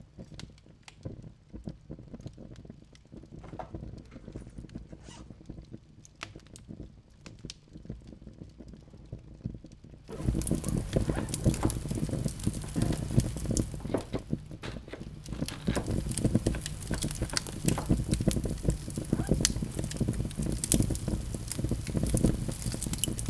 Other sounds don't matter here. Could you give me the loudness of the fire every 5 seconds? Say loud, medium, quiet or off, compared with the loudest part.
quiet, quiet, loud, loud, loud.